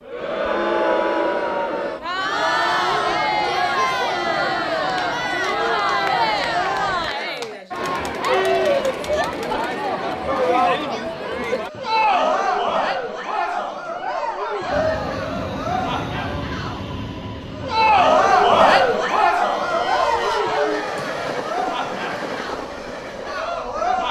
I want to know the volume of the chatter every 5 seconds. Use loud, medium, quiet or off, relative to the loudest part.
loud, loud, loud, loud, medium.